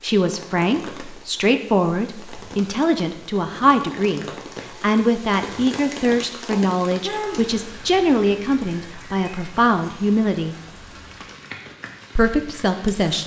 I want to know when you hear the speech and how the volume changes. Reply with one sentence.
The speech can be heard from 0.0 to 10.6 s, at a steady volume; and briefly from 12.2 to 13.2 s.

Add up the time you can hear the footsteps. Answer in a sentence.
The footsteps can't be heard in this clip.